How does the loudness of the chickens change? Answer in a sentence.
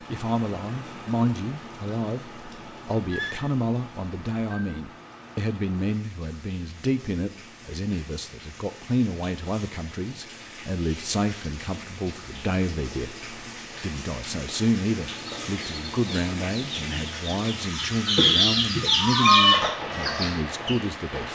The loudness of the chickens goes up.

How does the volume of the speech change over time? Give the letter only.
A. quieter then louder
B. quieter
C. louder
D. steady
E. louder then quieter
D.